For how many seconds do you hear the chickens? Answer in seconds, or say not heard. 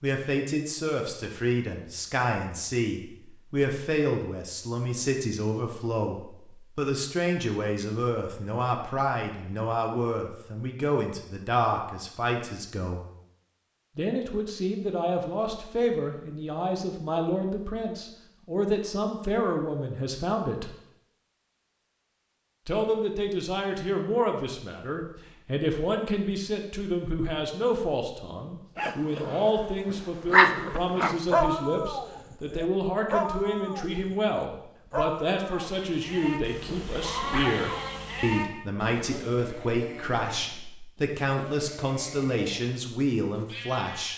not heard.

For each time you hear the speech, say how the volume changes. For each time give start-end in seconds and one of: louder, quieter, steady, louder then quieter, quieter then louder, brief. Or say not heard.
0.0-13.0 steady
13.9-20.7 steady
22.6-44.1 steady.